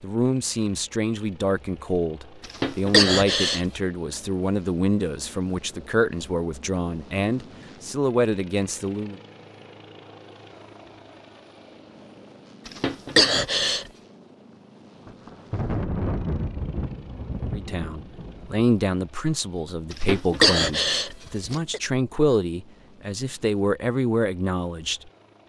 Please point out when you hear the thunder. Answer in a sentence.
The thunder can be heard from 15.1 to 18.6 s.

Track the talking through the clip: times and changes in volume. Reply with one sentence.
You can hear the talking from 0.0 to 9.2 s, at a steady volume; and from 17.5 to 25.0 s, getting quieter then louder.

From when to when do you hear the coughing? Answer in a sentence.
You can hear the coughing from 2.6 to 3.6 s, from 12.7 to 13.8 s and from 19.9 to 21.8 s.